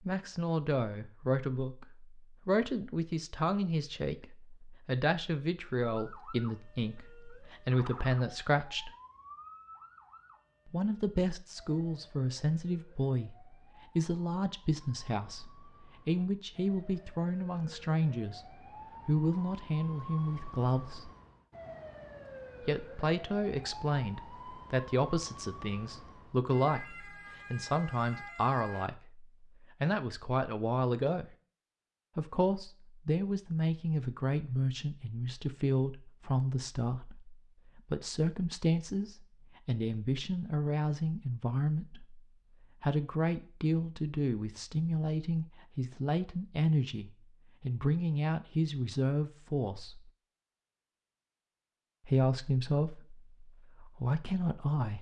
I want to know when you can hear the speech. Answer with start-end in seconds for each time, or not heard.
0.1-8.9, 10.7-18.4, 19.1-21.1, 22.6-31.2, 32.1-50.0, 52.0-54.9.